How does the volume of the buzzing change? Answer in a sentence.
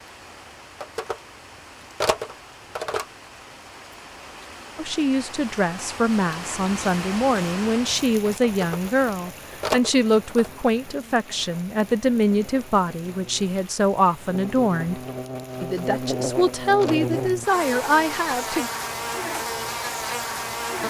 The volume of the buzzing goes up.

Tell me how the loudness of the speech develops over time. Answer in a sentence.
The volume of the speech stays about the same.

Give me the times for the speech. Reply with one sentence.
You can hear the speech from 4.8 to 15.0 s and from 15.6 to 18.7 s.